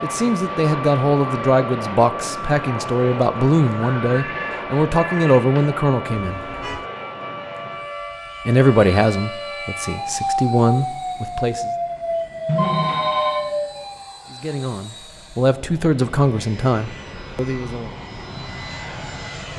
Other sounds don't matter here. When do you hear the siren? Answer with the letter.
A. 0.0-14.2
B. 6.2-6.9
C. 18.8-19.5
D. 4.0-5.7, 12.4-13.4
A.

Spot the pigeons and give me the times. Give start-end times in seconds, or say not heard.
not heard.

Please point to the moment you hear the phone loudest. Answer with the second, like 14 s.
13 s.